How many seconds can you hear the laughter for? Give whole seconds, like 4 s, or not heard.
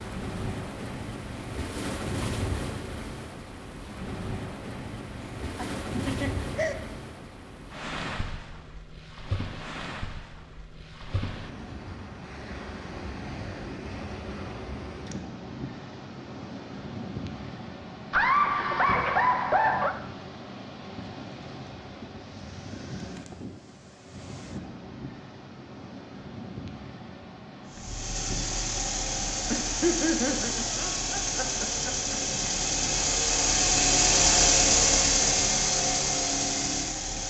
6 s.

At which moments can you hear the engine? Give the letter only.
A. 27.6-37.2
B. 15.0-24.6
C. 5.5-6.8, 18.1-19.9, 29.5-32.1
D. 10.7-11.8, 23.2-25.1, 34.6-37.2
A.